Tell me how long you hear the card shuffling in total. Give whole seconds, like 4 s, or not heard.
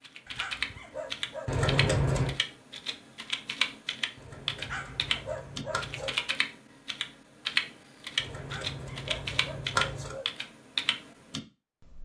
5 s.